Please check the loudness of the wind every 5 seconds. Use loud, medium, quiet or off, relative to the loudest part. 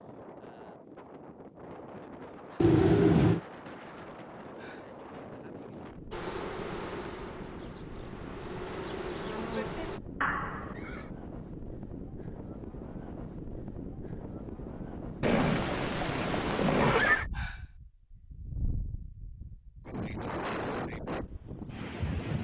medium, medium, medium, medium, loud.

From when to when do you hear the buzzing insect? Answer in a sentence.
The buzzing insect can be heard from 6.1 to 10.0 s.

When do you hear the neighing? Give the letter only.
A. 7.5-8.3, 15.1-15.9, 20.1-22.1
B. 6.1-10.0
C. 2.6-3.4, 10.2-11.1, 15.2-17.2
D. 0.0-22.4
C.